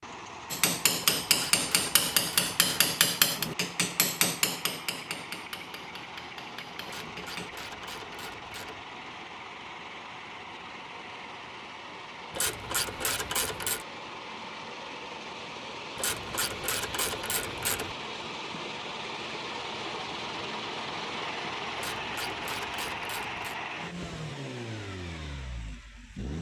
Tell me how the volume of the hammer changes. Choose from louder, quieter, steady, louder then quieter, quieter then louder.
quieter.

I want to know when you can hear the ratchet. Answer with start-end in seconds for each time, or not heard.
1.2-3.0, 6.8-8.8, 12.3-13.8, 15.9-17.9, 21.8-23.6.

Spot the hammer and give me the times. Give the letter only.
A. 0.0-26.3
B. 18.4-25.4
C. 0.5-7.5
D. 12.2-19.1
C.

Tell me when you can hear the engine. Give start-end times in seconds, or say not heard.
0.0-26.3.